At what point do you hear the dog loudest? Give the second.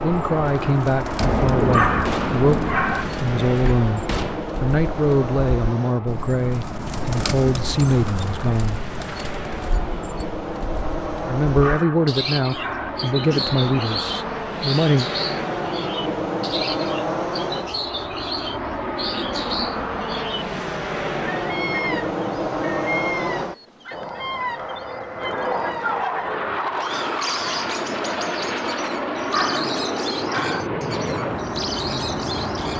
2 s.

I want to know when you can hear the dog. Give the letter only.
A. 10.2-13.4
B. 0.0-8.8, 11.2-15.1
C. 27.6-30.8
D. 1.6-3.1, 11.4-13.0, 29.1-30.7
D.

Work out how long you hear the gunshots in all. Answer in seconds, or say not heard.
3 s.